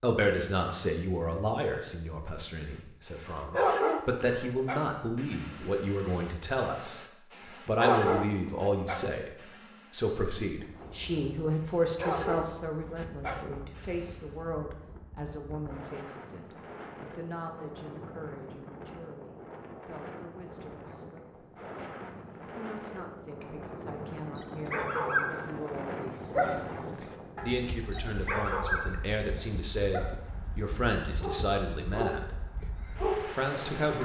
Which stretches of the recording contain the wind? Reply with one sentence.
The wind can be heard from 10.5 to 34.0 s.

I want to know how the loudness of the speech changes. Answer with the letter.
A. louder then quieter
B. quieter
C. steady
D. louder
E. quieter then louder
E.